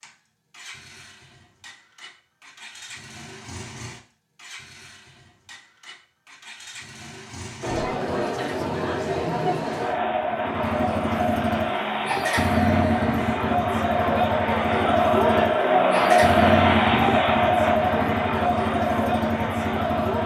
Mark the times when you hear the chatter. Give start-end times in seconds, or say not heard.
7.6-20.2.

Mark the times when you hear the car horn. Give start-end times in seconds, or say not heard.
not heard.